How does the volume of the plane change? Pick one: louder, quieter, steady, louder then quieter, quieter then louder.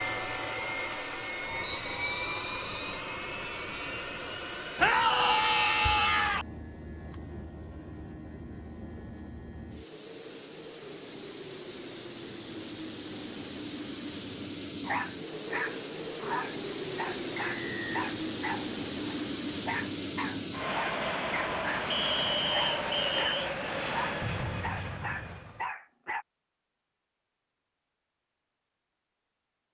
quieter then louder.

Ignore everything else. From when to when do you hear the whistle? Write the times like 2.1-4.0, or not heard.
1.6-3.0, 17.4-18.1, 21.9-23.5.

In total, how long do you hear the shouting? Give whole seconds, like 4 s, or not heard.
2 s.